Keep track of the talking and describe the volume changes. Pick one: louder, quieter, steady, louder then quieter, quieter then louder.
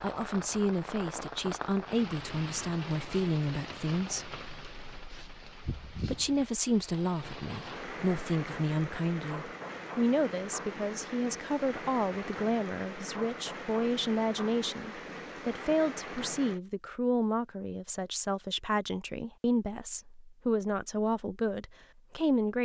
steady.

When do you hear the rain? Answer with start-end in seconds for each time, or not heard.
0.0-16.6.